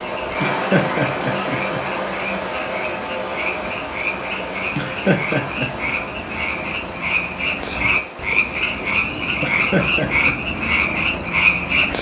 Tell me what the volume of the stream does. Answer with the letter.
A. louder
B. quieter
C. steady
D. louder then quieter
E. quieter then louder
B.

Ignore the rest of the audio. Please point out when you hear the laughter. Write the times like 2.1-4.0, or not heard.
0.4-1.8, 4.8-5.9, 9.4-10.3.